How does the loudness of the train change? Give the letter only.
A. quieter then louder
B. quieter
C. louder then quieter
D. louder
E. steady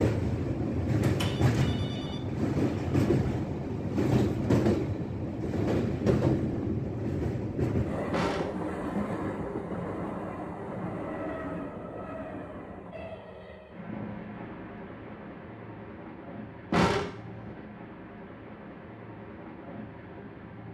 B.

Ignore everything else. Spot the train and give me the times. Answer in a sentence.
You can hear the train from 0.0 to 20.7 s.